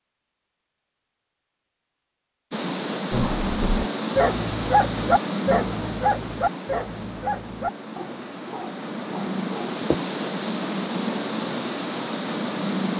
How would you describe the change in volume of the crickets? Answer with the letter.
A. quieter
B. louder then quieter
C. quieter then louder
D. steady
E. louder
C.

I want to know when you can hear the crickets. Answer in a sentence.
You can hear the crickets from 2.5 to 12.9 s.